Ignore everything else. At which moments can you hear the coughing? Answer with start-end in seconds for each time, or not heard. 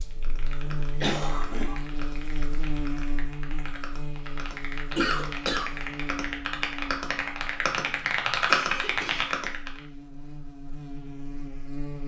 1.0-1.8, 4.9-5.8, 8.4-9.3.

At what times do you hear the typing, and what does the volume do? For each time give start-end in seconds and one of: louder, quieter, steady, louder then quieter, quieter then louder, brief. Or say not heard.
0.1-9.8 louder.